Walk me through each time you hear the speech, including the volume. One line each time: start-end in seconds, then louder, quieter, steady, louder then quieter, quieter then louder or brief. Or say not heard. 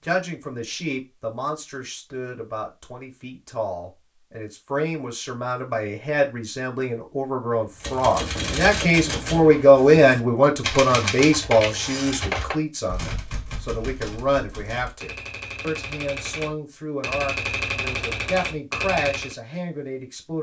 0.0-20.3 louder then quieter.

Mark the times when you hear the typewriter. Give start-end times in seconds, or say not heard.
7.8-19.4.